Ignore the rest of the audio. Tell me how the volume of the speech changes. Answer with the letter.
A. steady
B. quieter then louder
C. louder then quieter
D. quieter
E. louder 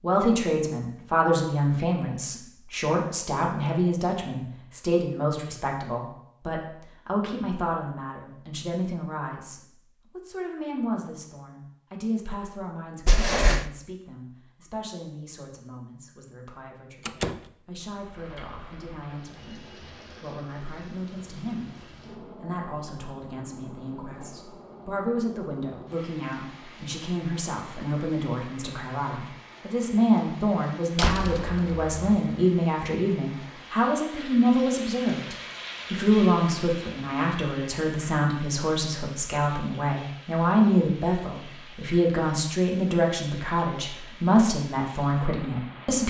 B.